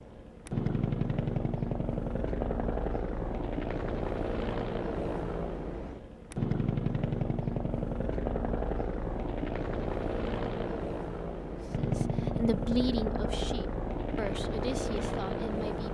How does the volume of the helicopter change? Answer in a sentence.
The loudness of the helicopter stays about the same.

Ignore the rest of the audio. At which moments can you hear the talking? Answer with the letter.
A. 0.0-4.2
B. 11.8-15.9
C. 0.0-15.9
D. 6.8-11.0
B.